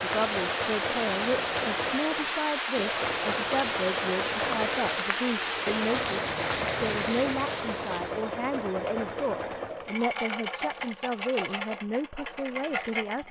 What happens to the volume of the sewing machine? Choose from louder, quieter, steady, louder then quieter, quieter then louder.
steady.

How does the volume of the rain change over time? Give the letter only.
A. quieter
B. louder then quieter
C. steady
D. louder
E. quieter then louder
C.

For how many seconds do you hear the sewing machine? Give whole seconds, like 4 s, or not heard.
13 s.